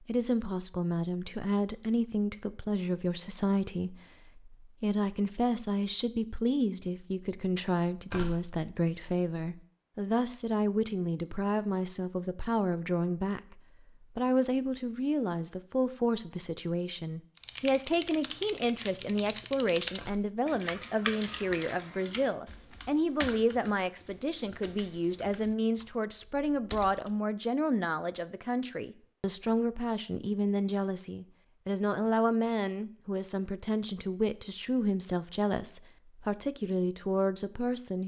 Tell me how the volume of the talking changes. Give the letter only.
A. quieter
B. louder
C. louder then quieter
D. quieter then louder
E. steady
E.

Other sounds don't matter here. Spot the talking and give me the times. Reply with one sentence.
You can hear the talking from 0.0 to 38.0 s.